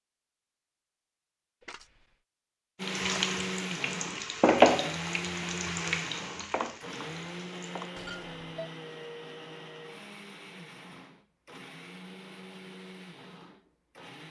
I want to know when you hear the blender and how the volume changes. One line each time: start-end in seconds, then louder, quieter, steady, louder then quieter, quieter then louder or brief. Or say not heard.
2.8-14.2 quieter.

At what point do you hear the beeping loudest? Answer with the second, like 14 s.
8 s.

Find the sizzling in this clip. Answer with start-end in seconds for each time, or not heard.
2.8-7.9.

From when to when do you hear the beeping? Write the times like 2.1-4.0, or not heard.
1.6-2.0, 8.0-8.7.